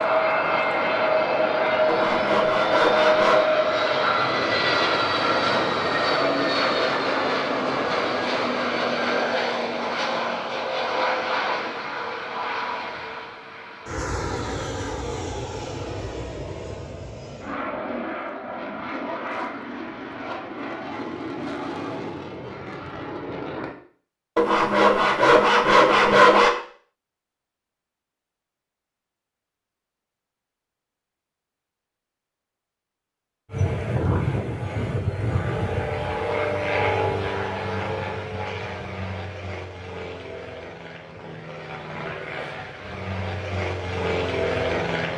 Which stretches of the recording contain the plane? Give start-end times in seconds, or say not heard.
0.0-23.8, 33.5-45.1.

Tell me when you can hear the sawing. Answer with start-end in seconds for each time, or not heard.
1.9-3.5, 24.4-26.5.